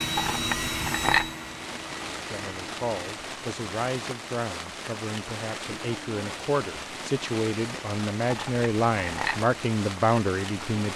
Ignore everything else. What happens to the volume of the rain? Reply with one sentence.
The loudness of the rain stays about the same.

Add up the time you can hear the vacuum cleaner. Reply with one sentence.
You can hear the vacuum cleaner for 3 seconds altogether.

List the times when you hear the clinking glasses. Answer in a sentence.
The clinking glasses can be heard from 0.1 to 1.3 s and from 8.2 to 9.4 s.